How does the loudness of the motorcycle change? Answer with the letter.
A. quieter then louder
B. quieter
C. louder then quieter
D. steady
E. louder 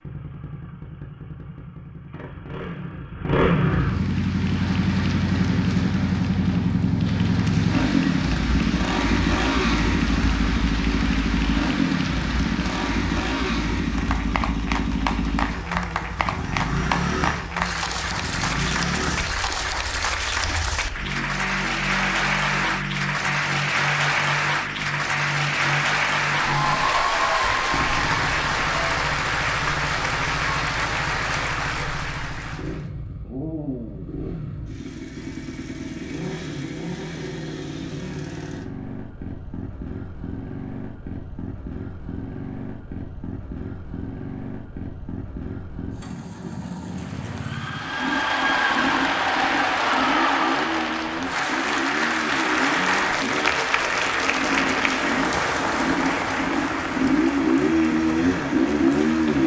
A.